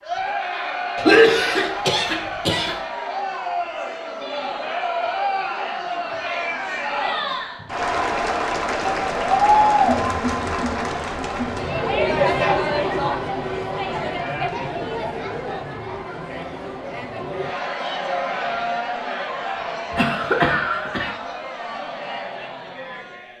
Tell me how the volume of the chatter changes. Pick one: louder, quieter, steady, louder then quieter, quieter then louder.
louder then quieter.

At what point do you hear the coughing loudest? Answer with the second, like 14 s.
1 s.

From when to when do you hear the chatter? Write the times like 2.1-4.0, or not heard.
0.0-23.3.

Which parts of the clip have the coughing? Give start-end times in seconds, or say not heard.
0.9-2.8, 19.9-21.1.